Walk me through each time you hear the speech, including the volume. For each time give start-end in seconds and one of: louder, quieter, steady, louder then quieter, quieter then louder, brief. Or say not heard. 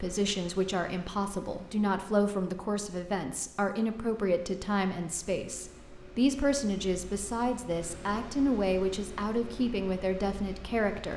0.0-11.1 steady.